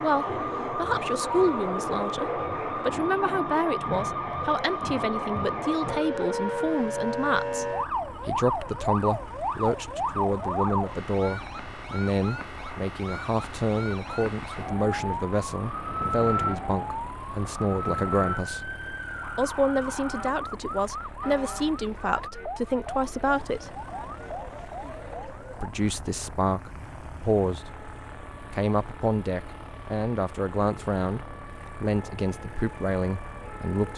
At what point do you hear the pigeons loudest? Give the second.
25 s.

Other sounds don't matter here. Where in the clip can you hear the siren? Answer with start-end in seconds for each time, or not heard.
0.0-33.9.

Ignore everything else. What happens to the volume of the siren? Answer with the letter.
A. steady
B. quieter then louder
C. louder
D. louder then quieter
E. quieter
E.